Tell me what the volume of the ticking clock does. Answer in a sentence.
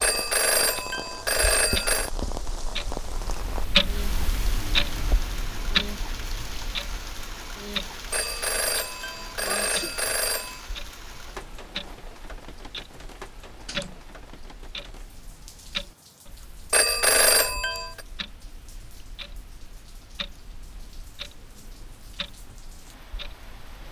The loudness of the ticking clock goes down.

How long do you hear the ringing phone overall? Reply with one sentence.
You can hear the ringing phone for 6 seconds altogether.